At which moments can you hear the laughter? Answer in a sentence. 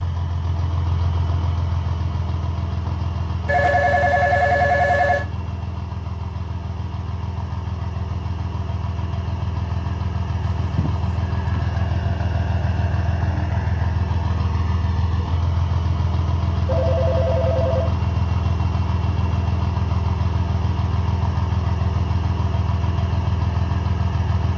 You can't hear the laughter here.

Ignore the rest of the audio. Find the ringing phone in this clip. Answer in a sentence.
The ringing phone can be heard from 3.5 to 5.2 s, from 10.4 to 11.8 s and from 16.6 to 17.9 s.